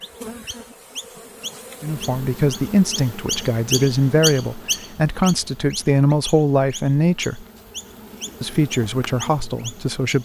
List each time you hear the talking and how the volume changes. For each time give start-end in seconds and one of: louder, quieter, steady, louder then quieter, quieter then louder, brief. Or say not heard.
1.8-7.5 steady
8.4-10.2 brief.